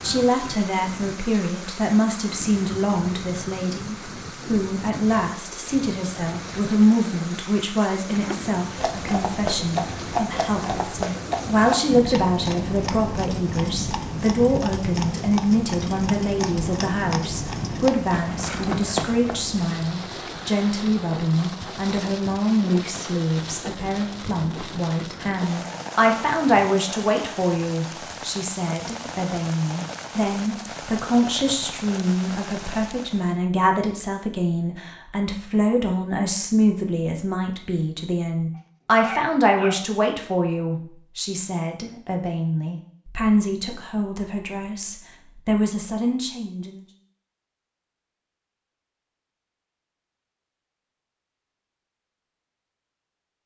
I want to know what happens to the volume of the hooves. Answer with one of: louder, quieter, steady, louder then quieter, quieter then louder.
steady.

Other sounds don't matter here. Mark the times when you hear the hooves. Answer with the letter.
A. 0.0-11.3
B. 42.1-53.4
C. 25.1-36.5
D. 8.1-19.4
D.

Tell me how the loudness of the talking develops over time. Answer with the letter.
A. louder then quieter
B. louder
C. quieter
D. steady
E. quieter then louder
D.